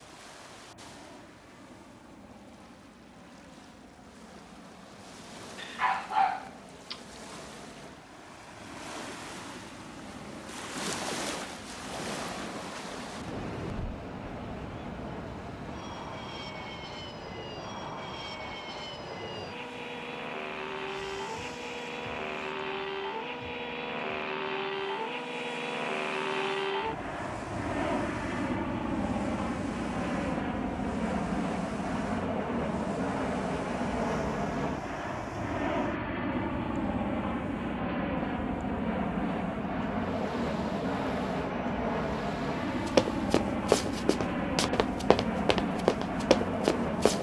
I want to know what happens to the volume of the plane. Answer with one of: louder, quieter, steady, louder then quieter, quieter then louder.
louder.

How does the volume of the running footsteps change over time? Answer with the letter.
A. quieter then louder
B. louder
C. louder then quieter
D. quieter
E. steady
A.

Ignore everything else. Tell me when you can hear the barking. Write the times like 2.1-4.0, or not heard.
5.5-7.0.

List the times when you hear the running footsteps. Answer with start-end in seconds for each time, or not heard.
42.6-47.1.